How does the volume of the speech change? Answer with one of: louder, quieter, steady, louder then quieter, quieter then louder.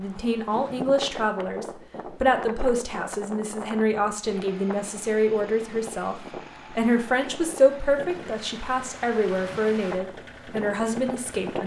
steady.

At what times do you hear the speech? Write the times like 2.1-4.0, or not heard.
0.0-11.6.